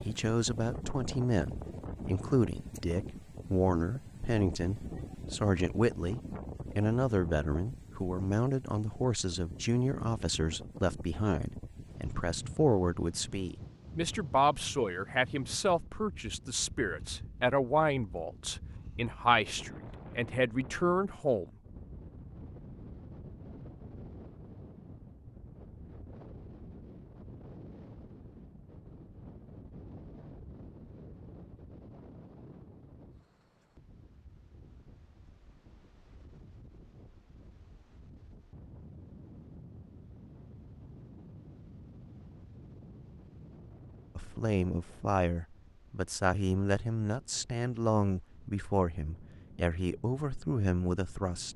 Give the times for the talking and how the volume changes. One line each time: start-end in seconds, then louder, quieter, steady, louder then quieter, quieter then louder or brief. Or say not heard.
0.0-21.5 steady
44.1-51.5 steady.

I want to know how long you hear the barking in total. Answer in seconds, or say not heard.
not heard.